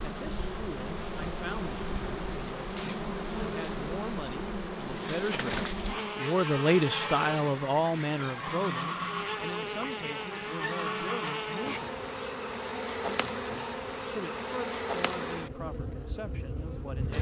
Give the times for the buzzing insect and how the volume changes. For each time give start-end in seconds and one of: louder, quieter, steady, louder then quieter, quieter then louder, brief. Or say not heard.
0.0-17.1 steady.